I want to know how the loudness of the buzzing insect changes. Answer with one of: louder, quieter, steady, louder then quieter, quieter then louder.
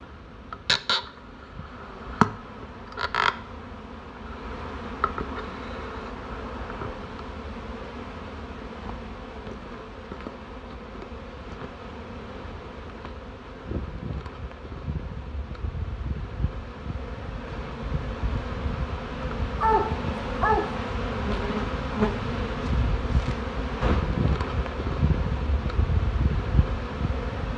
quieter then louder.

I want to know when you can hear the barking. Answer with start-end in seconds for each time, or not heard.
19.6-20.8.